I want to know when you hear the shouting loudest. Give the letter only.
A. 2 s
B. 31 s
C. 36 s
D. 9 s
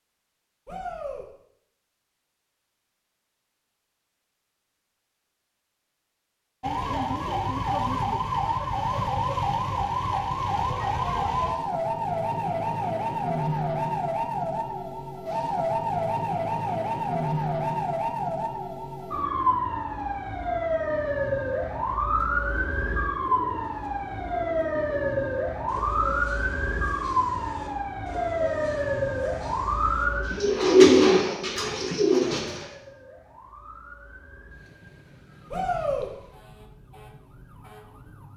C.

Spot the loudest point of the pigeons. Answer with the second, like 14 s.
31 s.